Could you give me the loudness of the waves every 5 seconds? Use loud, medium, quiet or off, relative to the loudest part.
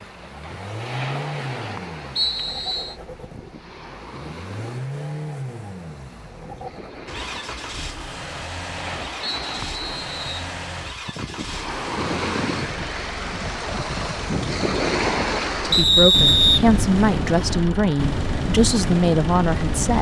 medium, medium, loud, loud.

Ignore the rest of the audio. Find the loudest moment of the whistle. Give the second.
16 s.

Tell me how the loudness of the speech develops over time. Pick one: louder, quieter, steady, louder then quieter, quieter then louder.
steady.